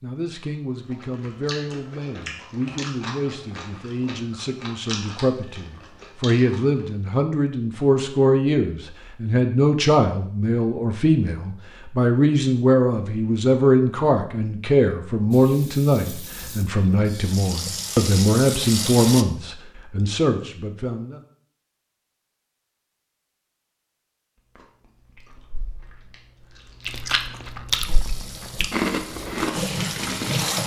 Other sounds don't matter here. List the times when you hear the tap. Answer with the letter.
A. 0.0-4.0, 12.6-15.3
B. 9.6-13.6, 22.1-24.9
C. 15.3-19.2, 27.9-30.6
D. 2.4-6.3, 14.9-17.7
C.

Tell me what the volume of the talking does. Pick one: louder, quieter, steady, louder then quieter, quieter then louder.
louder.